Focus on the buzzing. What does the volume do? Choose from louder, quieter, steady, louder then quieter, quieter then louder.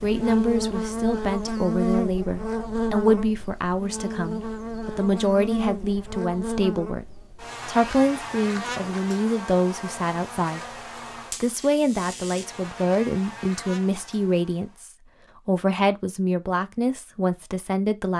quieter.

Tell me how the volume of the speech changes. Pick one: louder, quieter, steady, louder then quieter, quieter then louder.
steady.